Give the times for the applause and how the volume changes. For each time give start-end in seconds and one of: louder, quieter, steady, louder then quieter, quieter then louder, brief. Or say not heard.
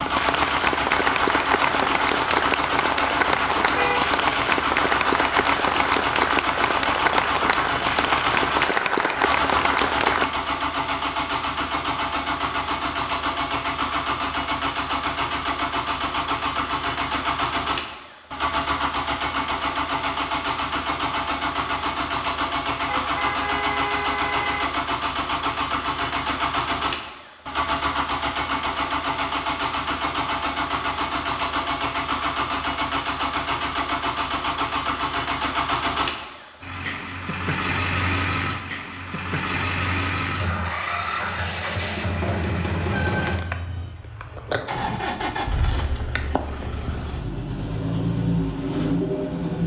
0.0-10.2 steady.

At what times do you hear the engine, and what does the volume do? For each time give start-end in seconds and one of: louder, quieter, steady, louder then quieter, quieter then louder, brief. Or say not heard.
0.0-49.6 steady.